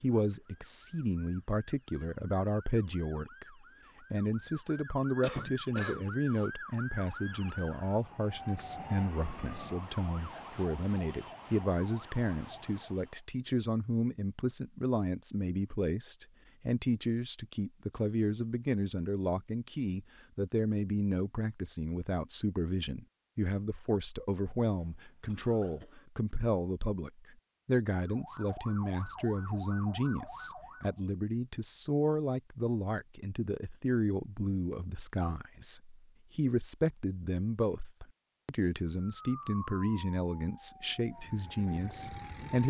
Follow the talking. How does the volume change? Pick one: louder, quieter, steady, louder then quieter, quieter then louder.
steady.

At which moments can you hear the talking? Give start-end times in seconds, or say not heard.
0.0-42.6.